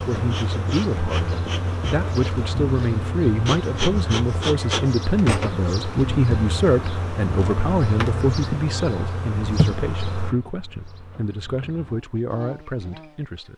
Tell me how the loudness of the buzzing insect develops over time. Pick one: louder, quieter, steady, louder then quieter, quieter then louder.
quieter.